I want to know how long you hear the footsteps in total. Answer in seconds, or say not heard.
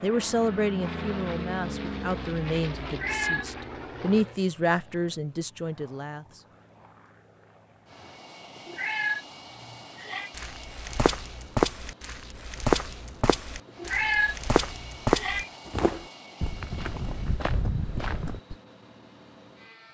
8 s.